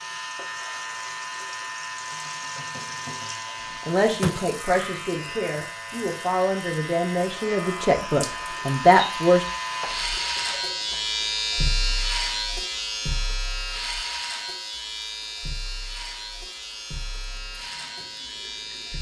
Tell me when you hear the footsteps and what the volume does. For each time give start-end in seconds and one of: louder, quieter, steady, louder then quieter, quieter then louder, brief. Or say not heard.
not heard.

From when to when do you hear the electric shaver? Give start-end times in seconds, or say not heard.
0.0-18.9.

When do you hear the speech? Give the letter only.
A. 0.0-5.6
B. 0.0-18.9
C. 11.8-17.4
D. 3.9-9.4
D.